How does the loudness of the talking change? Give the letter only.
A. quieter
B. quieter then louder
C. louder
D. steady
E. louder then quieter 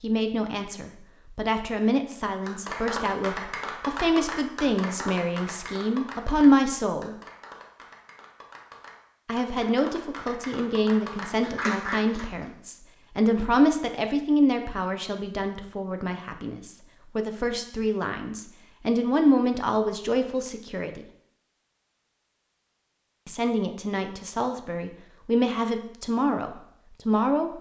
D.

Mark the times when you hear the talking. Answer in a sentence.
The talking can be heard from 0.0 to 7.2 s, from 9.2 to 21.0 s and from 23.2 to 27.5 s.